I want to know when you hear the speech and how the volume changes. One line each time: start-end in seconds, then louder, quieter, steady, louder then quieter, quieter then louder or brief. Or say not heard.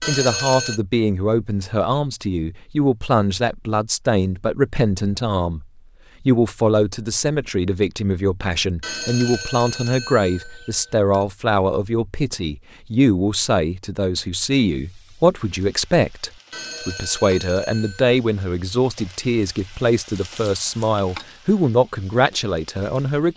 0.1-23.3 steady.